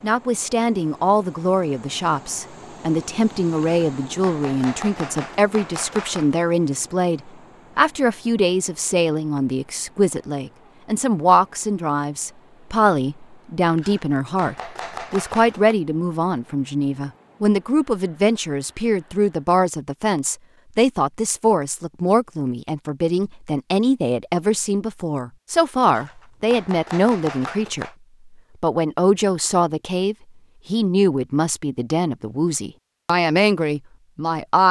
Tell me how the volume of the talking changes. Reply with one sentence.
The volume of the talking stays about the same.